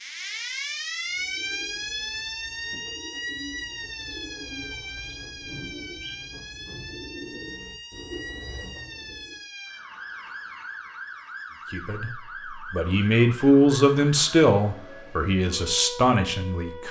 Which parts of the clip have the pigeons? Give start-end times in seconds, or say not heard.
1.0-9.3.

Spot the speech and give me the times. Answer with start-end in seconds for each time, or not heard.
11.7-12.1, 12.7-16.8.